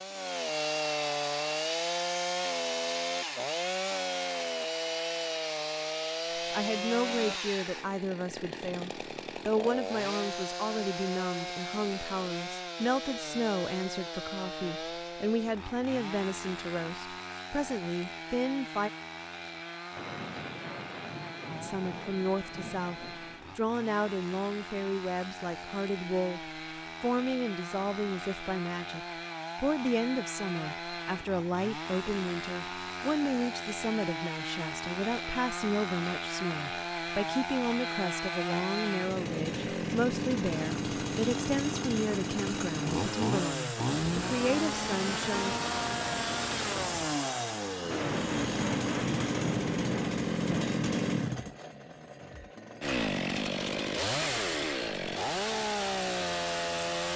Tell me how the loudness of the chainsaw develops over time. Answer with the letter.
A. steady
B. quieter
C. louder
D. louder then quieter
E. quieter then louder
E.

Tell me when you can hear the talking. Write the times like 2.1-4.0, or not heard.
6.3-18.9, 21.6-45.5.